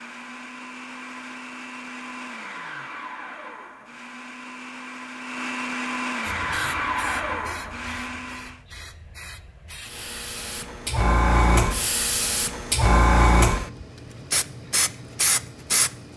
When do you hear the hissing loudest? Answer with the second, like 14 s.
13 s.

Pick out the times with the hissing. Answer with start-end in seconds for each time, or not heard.
6.2-15.9.